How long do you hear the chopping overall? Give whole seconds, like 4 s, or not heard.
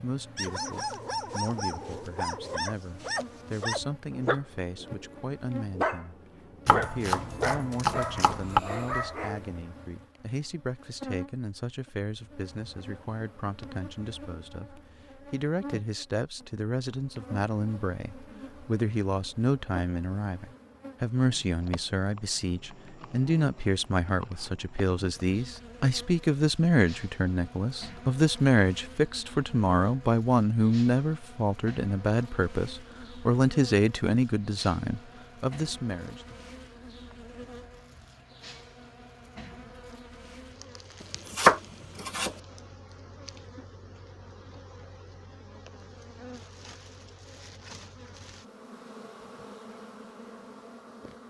3 s.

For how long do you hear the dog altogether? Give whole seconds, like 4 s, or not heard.
9 s.